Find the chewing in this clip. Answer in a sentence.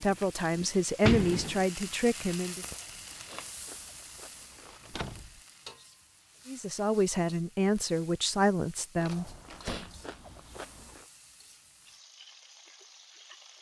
The chewing can be heard from 2.6 to 5.0 s and from 8.9 to 11.1 s.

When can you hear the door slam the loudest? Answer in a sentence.
The loudest moment of the door slam is at 1 second.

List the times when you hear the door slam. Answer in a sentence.
You can hear the door slam from 0.6 to 1.6 s, from 4.8 to 5.4 s and from 9.5 to 10.0 s.